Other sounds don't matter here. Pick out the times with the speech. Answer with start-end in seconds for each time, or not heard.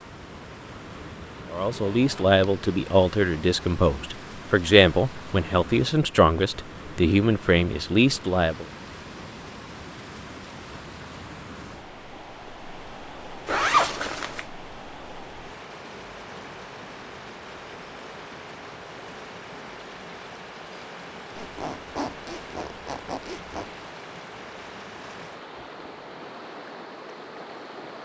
1.5-8.7.